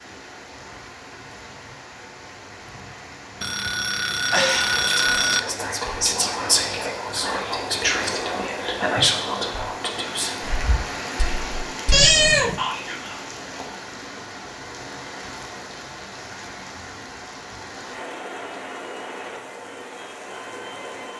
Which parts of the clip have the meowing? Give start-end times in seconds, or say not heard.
11.9-12.6.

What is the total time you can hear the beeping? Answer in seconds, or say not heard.
2 s.